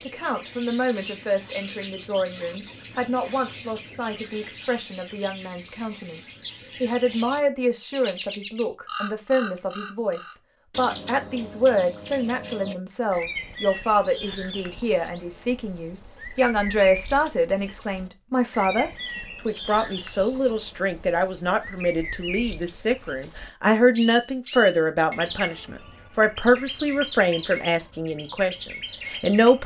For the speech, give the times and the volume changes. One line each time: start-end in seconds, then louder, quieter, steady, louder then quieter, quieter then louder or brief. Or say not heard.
0.0-29.6 louder.